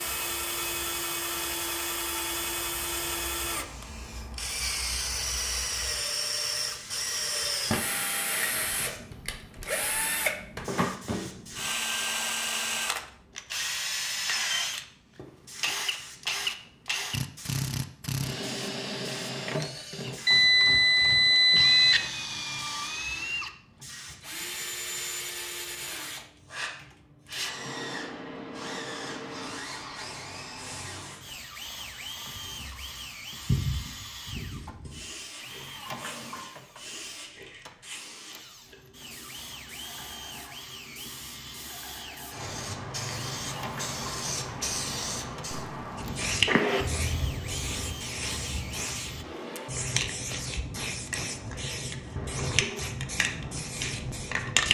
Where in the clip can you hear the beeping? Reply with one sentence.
The beeping can be heard from 20.2 to 22.1 s.